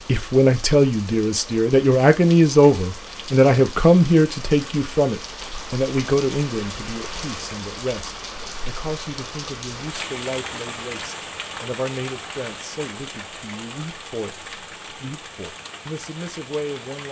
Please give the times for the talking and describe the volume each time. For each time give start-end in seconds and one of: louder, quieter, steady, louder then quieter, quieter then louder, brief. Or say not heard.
0.0-17.0 quieter.